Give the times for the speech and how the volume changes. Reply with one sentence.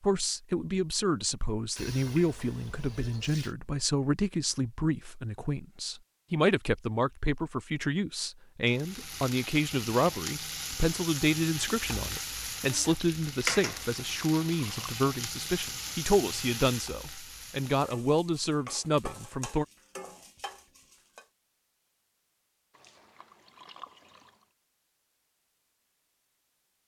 The speech can be heard from 0.0 to 19.6 s, at a steady volume.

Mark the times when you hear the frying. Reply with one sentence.
The frying can be heard from 8.7 to 21.2 s.